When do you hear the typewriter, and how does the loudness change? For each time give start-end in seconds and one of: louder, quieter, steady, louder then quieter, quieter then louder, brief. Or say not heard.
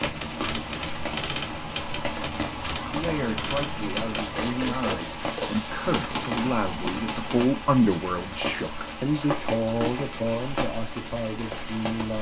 0.0-7.5 steady.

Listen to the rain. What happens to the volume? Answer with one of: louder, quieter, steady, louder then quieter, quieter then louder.
steady.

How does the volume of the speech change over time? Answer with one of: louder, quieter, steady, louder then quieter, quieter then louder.
louder then quieter.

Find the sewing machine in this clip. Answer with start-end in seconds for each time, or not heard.
not heard.